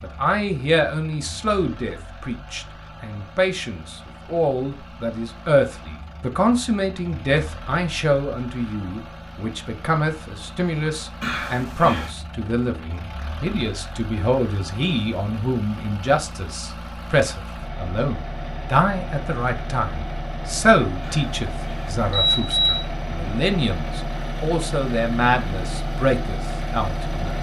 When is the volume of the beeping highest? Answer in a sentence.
The loudest moment of the beeping is at 22 seconds.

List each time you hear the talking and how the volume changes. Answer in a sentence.
You can hear the talking from 0.0 to 27.3 s, at a steady volume.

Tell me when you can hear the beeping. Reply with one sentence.
You can hear the beeping from 11.2 to 12.1 s and from 21.0 to 22.9 s.